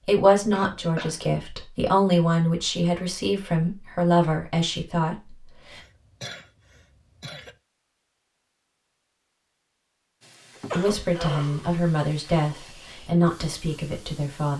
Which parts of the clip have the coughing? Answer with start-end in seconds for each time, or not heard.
0.5-1.2, 5.7-7.5, 10.6-11.8.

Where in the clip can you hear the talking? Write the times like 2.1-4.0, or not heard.
0.1-5.8, 10.8-14.5.